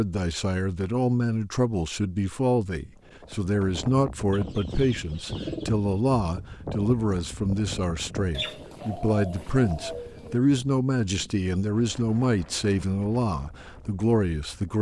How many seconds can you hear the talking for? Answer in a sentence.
You can hear the talking for 15 seconds altogether.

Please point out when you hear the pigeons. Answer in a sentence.
The pigeons can be heard from 4.3 to 5.8 s and from 8.3 to 10.3 s.